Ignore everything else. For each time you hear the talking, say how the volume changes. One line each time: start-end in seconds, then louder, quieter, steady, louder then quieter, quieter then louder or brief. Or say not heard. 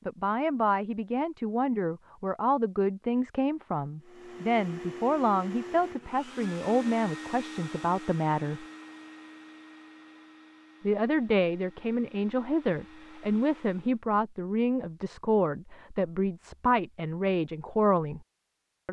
0.1-8.7 steady
10.8-18.2 steady.